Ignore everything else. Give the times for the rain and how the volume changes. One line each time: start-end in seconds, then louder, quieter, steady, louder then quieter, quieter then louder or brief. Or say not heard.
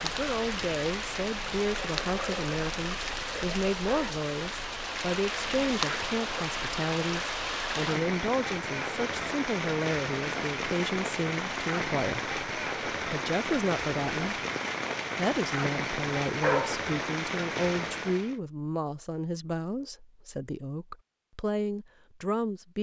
0.0-18.4 steady.